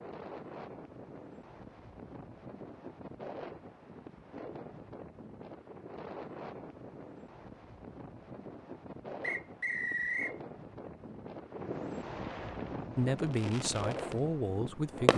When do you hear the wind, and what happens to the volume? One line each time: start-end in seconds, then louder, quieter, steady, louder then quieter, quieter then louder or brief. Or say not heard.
0.0-15.1 louder.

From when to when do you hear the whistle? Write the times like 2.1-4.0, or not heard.
9.2-10.3.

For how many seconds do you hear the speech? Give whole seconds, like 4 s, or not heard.
2 s.